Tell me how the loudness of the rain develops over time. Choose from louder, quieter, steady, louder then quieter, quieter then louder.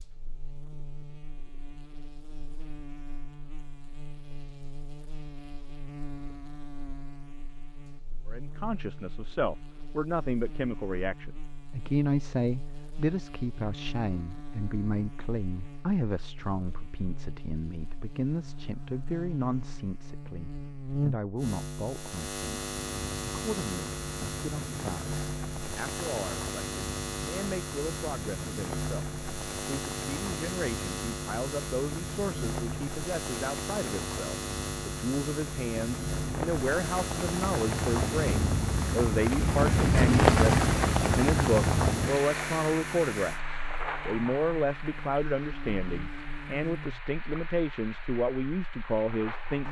louder then quieter.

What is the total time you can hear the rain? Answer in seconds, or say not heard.
27 s.